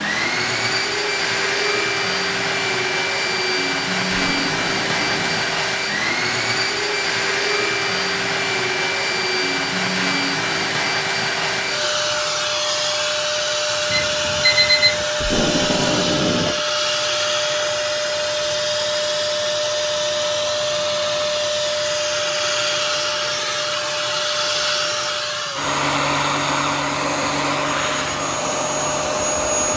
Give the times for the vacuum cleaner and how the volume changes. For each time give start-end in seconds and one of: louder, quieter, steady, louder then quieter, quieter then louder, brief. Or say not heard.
0.0-29.7 steady.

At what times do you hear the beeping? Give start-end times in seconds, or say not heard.
13.9-15.1.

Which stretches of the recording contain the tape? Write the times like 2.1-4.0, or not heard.
4.3-5.5, 15.2-16.6.